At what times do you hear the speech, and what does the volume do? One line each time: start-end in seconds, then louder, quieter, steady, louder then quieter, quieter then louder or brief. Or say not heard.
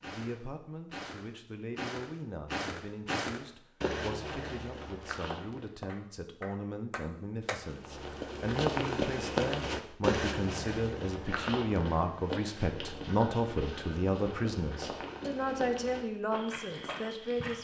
0.0-17.5 louder.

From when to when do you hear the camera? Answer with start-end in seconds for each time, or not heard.
not heard.